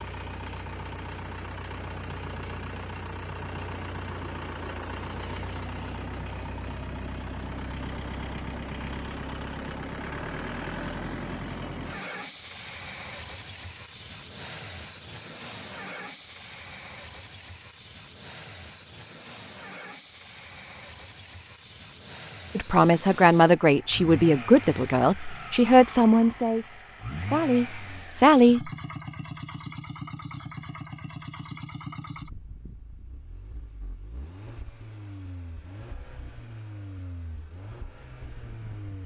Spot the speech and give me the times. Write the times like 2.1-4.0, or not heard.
22.6-28.7.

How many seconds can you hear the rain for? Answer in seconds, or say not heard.
not heard.